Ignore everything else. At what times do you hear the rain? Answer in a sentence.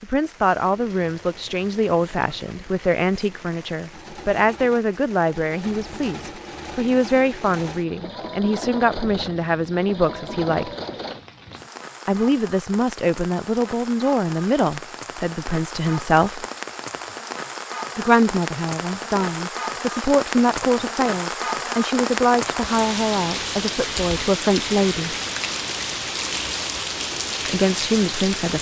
You can hear the rain from 0.0 to 28.5 s.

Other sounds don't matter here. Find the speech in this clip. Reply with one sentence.
You can hear the speech from 0.0 to 10.8 s, from 12.1 to 16.4 s, from 17.9 to 25.1 s and from 27.4 to 28.5 s.